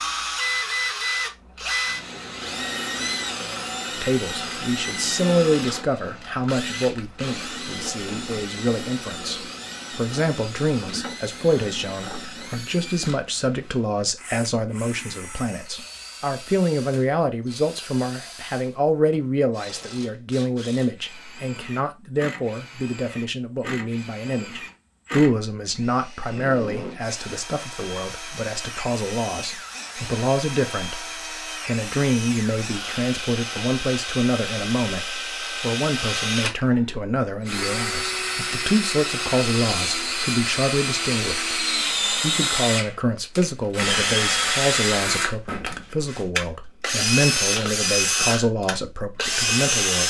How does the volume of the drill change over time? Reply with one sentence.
The loudness of the drill goes down, then up.